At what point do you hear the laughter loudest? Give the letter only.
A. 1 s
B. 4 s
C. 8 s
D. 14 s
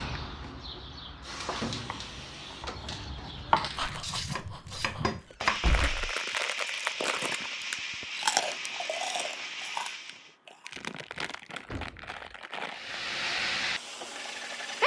B.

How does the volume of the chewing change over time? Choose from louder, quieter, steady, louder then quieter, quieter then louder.
louder then quieter.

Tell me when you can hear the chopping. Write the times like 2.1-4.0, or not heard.
0.7-5.7.